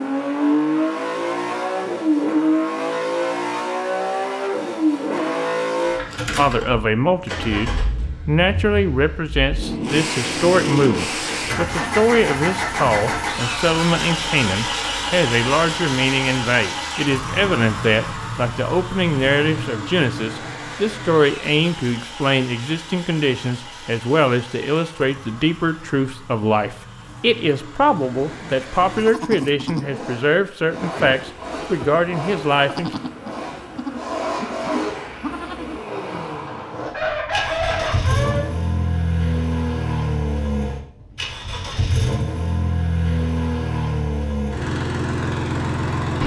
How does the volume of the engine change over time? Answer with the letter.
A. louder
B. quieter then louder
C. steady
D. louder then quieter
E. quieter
B.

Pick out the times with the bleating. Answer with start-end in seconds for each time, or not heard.
28.1-35.9.